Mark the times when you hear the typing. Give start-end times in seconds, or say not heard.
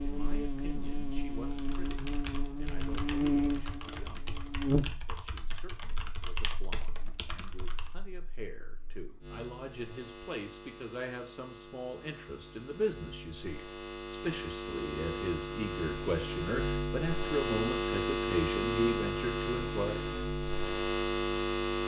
1.4-8.0.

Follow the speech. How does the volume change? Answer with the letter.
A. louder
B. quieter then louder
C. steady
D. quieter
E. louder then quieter
A.